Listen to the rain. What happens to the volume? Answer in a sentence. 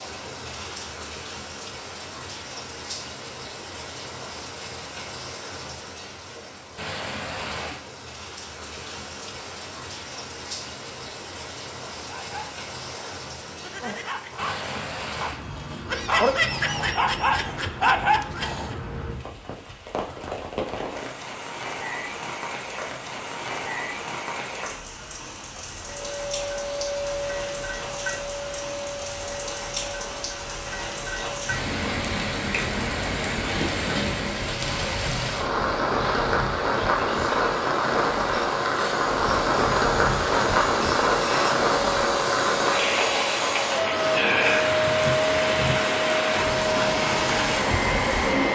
The loudness of the rain goes up.